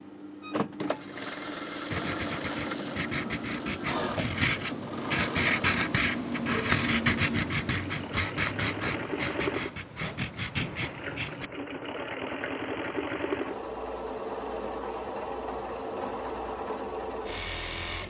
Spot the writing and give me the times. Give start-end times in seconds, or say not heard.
1.9-11.5.